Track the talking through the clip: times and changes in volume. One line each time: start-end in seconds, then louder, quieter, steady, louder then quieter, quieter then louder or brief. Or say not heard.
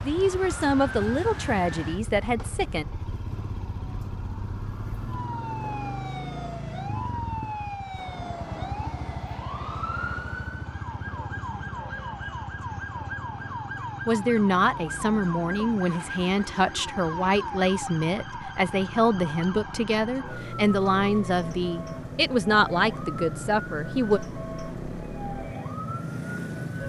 0.0-2.9 brief
14.1-24.2 steady.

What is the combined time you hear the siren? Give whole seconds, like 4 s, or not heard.
27 s.